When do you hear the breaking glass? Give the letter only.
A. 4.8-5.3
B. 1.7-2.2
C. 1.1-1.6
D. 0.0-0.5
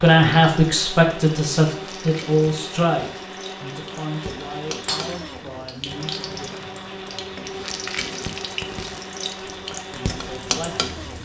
A.